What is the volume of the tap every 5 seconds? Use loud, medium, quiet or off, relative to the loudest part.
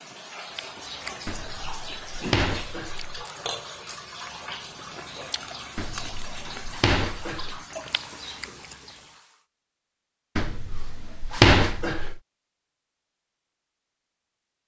loud, loud, off.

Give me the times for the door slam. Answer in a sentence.
You can hear the door slam from 1.2 to 3.2 s, from 5.8 to 7.6 s and from 10.3 to 12.2 s.